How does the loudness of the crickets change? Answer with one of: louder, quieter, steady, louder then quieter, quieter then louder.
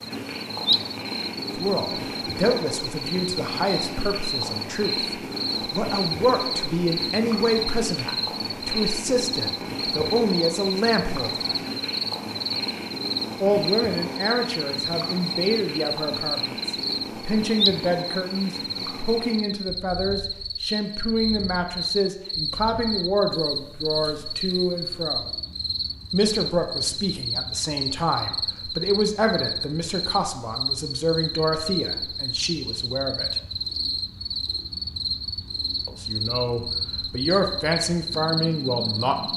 steady.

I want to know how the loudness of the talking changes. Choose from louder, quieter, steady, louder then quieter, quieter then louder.
steady.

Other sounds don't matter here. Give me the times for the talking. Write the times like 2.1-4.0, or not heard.
1.6-11.6, 13.4-25.2, 26.1-33.4, 35.9-39.1.